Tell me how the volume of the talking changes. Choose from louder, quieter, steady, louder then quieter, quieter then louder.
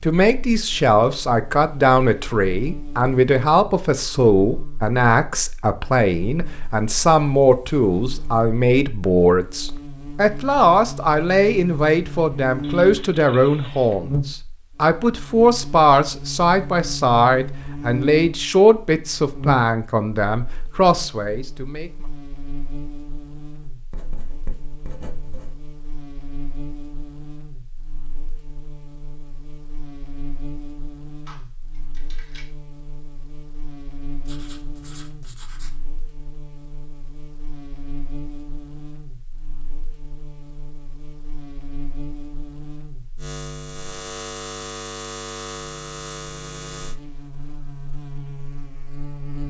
steady.